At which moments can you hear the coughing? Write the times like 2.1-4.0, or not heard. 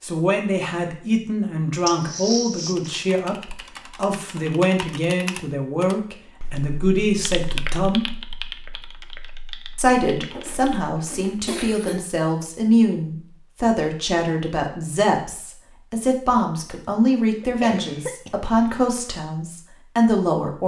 1.9-2.9, 10.3-12.1, 17.4-18.9.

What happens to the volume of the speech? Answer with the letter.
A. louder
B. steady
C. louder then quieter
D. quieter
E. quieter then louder
B.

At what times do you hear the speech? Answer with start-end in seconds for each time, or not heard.
0.0-8.2, 9.8-20.6.